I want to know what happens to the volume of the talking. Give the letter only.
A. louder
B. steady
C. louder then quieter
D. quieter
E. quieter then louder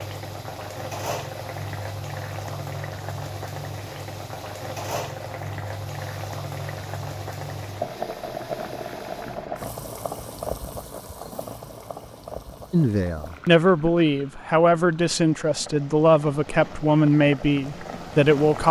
B.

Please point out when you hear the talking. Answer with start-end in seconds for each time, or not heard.
12.7-18.6.